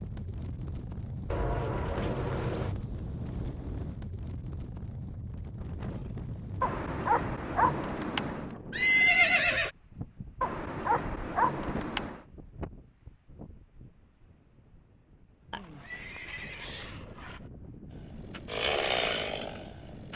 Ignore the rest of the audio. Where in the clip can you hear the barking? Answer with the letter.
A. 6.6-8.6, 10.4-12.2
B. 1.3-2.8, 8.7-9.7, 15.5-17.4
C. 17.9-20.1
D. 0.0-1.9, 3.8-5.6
A.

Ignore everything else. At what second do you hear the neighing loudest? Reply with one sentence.
The loudest moment of the neighing is at 9 seconds.